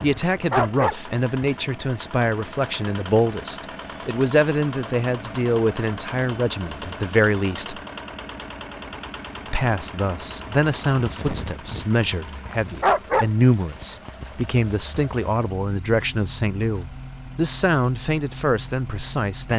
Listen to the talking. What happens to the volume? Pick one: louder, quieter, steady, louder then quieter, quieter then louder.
steady.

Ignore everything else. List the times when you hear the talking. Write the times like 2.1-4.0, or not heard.
0.0-7.8, 9.5-19.5.